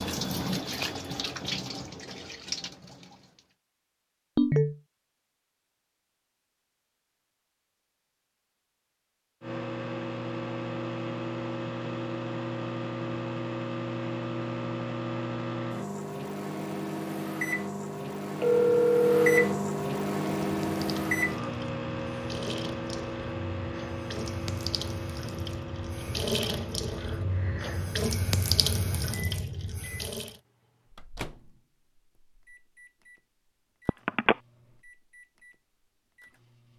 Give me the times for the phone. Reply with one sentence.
The phone can be heard from 4.3 to 4.8 s, from 18.4 to 19.6 s and from 33.9 to 34.4 s.